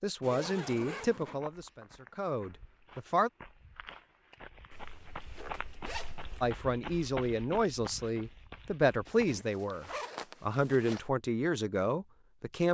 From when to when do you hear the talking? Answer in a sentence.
The talking can be heard from 0.0 to 3.3 s and from 6.4 to 12.6 s.